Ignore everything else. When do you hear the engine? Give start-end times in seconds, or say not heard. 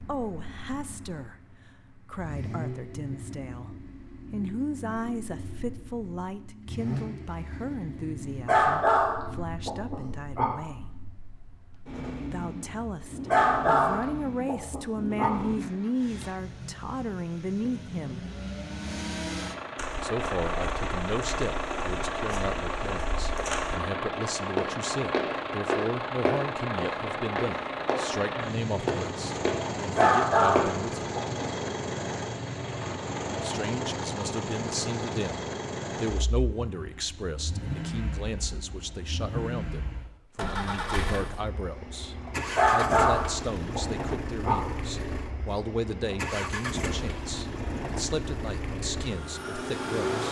0.0-50.2.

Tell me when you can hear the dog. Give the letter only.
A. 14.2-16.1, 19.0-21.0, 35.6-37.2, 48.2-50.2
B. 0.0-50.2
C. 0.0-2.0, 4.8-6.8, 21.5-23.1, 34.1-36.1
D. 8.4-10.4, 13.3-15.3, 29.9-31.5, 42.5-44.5
D.